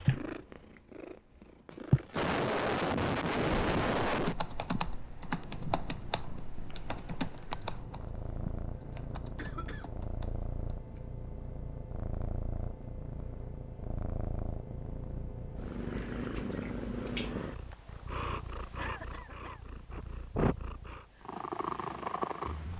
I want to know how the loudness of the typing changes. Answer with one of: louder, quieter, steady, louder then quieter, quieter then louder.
quieter.